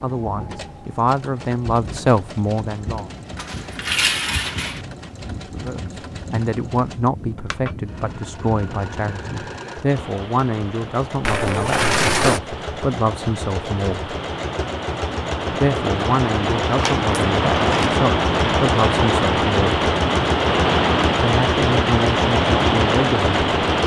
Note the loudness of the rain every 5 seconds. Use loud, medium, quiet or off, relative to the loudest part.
quiet, quiet, quiet, loud, loud.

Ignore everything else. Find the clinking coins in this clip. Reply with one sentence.
The clinking coins can be heard from 3.4 to 4.8 s, from 11.2 to 12.4 s and from 16.6 to 17.9 s.